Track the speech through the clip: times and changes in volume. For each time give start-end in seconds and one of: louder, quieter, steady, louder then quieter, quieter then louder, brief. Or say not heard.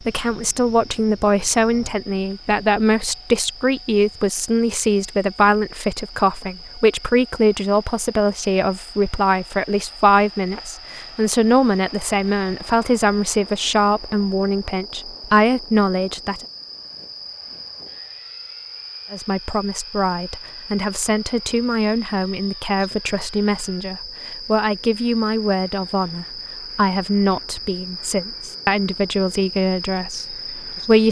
0.0-16.4 steady
19.1-31.0 steady.